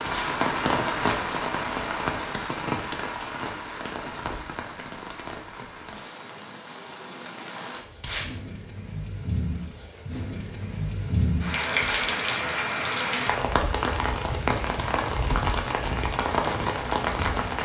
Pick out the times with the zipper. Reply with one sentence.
You can't hear the zipper here.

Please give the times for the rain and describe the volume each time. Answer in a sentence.
You can hear the rain from 0.0 to 17.5 s, getting quieter then louder.